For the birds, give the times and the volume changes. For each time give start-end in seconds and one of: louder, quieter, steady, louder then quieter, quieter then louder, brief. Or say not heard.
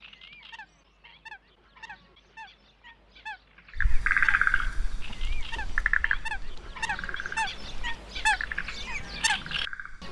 0.0-10.0 louder.